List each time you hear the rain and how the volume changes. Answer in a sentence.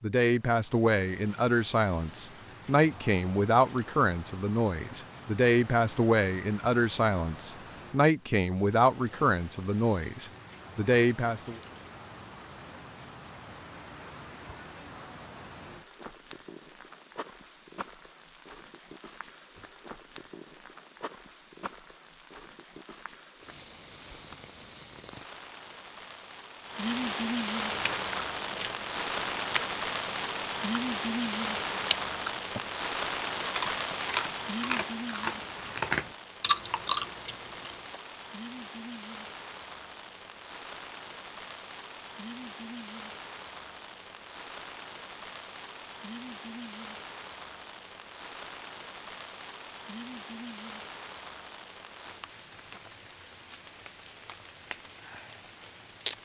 You can hear the rain from 0.2 to 56.2 s, getting louder then quieter.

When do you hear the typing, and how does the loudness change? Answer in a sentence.
You can't hear the typing here.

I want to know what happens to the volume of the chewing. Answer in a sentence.
The volume of the chewing goes up.